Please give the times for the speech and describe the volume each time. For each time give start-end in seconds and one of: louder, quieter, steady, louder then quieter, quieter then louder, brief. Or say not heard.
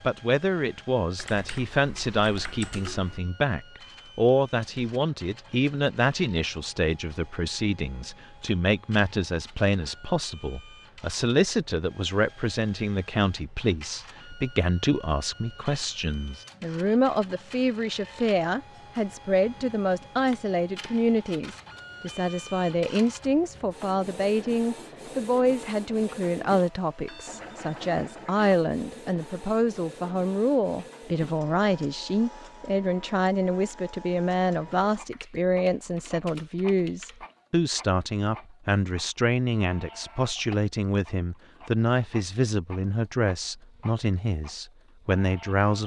0.0-45.8 steady.